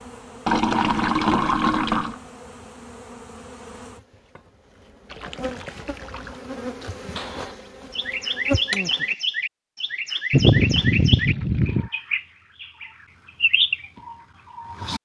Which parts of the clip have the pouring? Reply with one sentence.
The pouring can be heard from 0.5 to 2.1 s, from 5.1 to 6.3 s and from 10.3 to 11.9 s.